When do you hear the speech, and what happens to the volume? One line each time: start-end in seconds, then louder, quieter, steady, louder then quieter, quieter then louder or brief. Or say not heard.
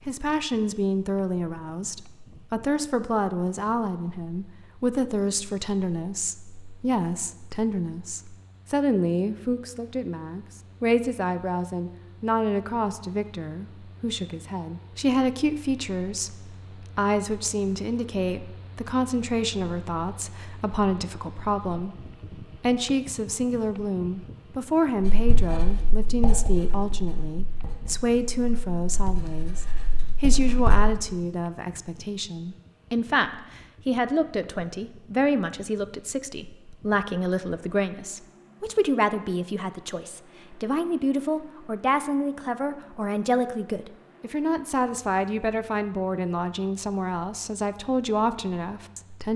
0.1-49.3 steady.